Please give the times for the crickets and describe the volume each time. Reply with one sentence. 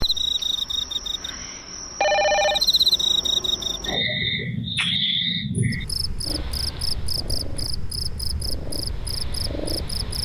You can hear the crickets from 0.0 to 10.2 s, getting louder then quieter.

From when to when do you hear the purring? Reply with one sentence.
The purring can be heard from 6.2 to 10.2 s.